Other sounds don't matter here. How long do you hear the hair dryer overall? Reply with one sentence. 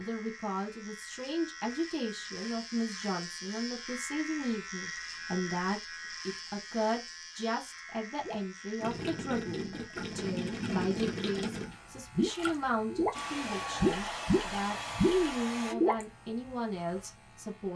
You can hear the hair dryer for 3 seconds altogether.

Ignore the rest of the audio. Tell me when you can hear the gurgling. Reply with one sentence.
The gurgling can be heard from 8.2 to 13.2 s and from 13.8 to 16.1 s.